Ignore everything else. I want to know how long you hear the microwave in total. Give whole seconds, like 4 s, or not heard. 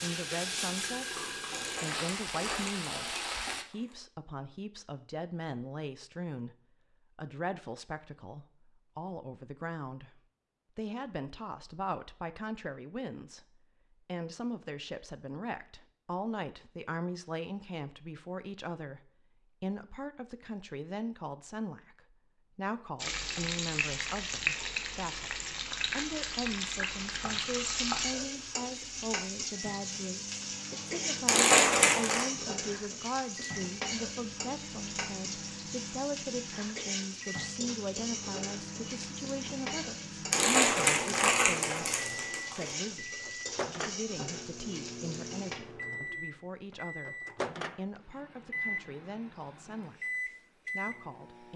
22 s.